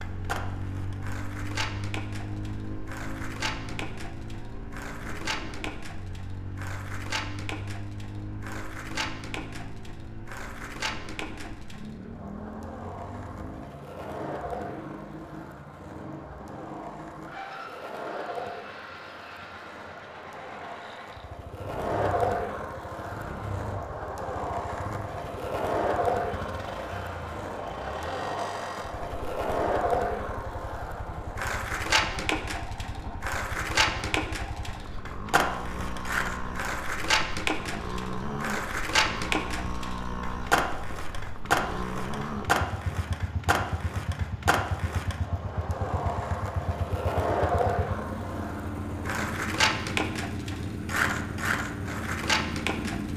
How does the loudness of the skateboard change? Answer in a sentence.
The loudness of the skateboard goes up.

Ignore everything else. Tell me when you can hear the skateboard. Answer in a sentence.
The skateboard can be heard from 0.0 to 53.1 s.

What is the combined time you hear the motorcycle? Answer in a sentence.
You can hear the motorcycle for 53 seconds altogether.